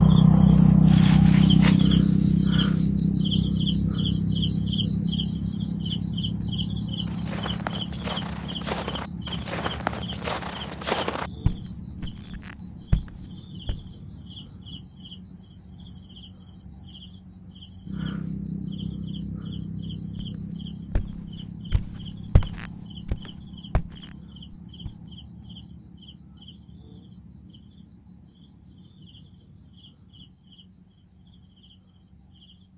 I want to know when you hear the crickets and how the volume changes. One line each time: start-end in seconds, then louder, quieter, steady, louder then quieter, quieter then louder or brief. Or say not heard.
0.0-32.7 quieter.